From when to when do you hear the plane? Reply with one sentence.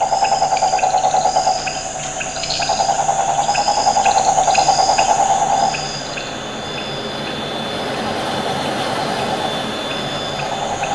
The plane can be heard from 0.0 to 10.9 s.